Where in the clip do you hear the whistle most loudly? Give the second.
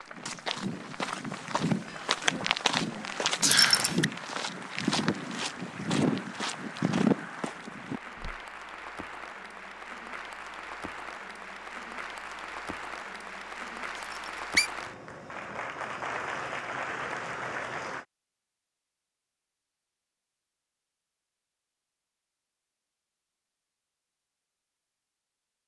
4 s.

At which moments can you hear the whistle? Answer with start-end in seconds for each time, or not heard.
3.4-4.0, 14.0-14.7.